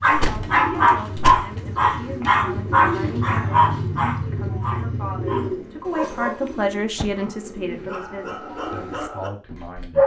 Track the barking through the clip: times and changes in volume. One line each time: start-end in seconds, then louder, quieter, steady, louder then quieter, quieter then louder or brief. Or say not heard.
0.0-10.0 quieter.